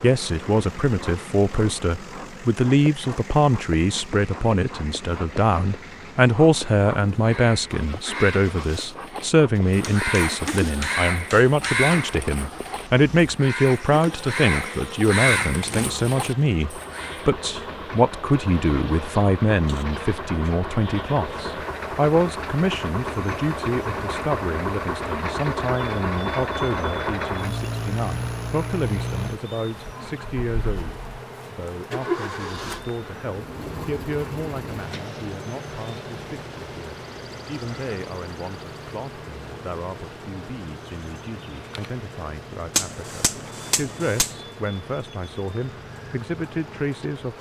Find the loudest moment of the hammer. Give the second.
43 s.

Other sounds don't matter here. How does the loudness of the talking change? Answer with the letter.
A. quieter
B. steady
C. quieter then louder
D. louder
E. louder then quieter
A.